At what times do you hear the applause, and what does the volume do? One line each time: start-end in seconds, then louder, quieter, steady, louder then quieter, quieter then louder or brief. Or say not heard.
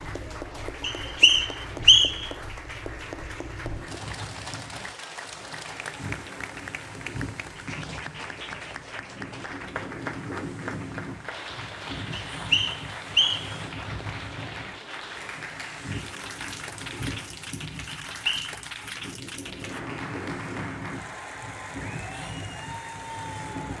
0.0-23.7 steady.